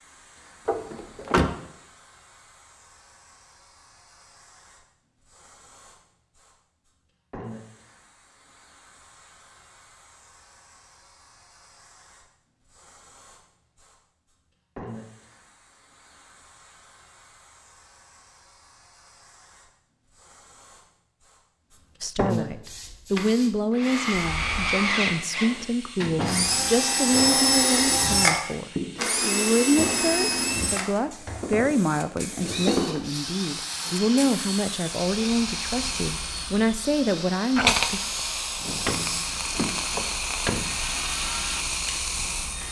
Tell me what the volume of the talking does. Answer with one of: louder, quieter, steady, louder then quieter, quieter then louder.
steady.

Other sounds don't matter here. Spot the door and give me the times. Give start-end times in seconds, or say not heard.
0.7-1.6, 25.5-26.9, 38.6-40.8.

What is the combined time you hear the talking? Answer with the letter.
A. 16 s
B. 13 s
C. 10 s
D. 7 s
A.